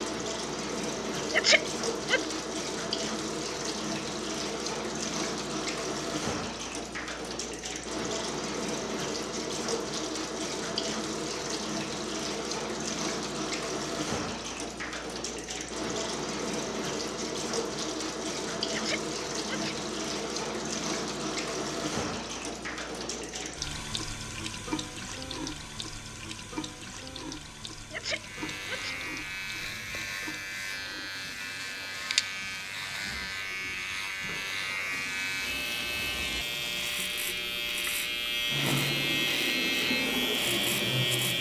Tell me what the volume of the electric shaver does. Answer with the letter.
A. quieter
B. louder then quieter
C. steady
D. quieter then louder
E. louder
E.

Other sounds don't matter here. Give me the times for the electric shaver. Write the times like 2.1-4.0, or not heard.
28.1-41.3.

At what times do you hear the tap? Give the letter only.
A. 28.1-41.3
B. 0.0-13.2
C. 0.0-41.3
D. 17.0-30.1
C.